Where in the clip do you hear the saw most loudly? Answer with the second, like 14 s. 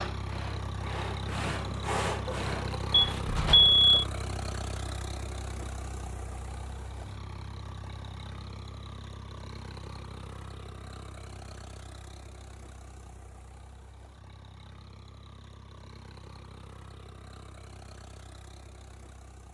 2 s.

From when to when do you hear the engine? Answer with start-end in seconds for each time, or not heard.
0.0-19.4.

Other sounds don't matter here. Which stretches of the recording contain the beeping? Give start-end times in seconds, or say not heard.
2.9-4.0.